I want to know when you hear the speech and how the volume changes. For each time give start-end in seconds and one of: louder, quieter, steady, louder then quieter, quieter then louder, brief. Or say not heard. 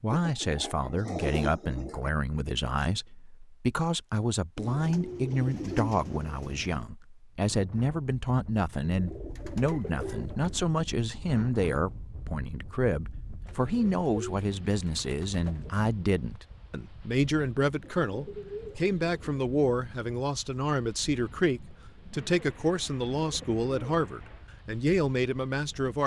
0.0-26.0 steady.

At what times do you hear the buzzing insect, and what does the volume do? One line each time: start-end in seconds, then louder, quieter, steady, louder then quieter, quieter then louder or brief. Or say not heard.
not heard.